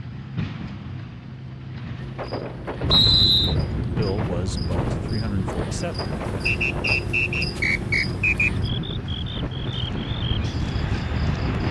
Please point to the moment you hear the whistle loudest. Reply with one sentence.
The volume of the whistle peaks at 3 seconds.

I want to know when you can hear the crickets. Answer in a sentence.
You can hear the crickets from 1.9 to 11.6 s.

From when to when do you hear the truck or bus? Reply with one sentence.
The truck or bus can be heard from 0.0 to 11.6 s.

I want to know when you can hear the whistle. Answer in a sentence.
You can hear the whistle from 2.9 to 3.5 s and from 6.5 to 8.5 s.